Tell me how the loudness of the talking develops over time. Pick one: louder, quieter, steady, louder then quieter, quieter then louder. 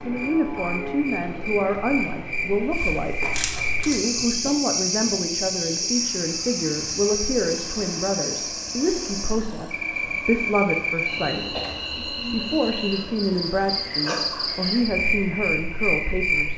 steady.